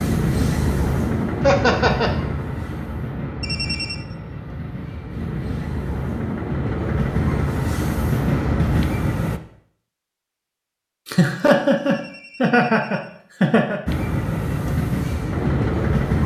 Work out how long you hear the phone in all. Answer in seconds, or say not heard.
2 s.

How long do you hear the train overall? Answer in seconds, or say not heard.
12 s.